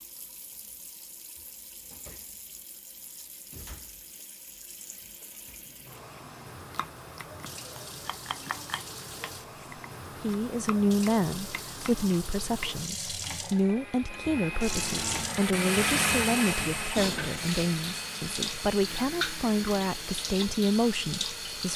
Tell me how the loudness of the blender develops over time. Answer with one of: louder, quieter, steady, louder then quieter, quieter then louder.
louder then quieter.